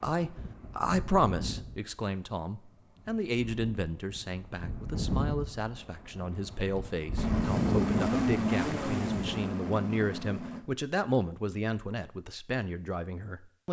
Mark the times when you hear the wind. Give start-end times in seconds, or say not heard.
0.1-9.5.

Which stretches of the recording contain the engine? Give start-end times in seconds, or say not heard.
7.2-10.7.